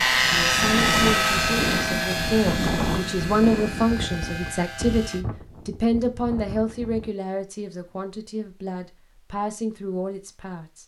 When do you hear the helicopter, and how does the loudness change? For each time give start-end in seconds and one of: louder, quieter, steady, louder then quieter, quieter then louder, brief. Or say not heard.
0.0-5.2 quieter.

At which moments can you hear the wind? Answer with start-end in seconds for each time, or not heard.
0.0-7.1.